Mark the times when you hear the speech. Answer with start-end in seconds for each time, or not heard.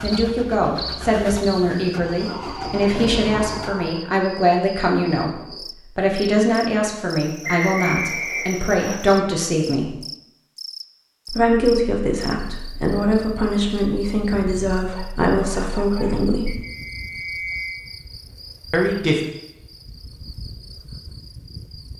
0.0-9.9, 11.2-16.6, 18.7-19.2.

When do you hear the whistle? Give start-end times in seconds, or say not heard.
7.4-8.9, 16.4-17.8.